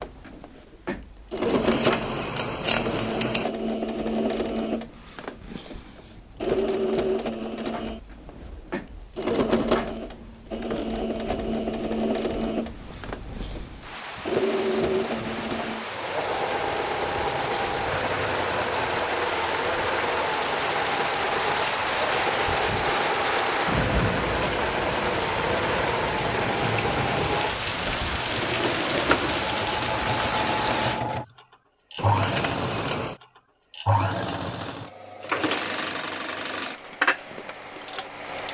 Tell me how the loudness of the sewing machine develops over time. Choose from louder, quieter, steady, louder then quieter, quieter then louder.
steady.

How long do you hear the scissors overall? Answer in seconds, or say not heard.
5 s.